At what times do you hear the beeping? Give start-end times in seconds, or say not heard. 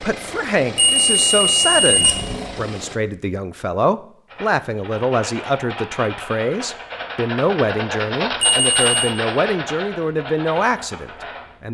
0.8-2.5, 8.4-9.2.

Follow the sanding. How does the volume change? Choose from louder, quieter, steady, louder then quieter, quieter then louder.
louder then quieter.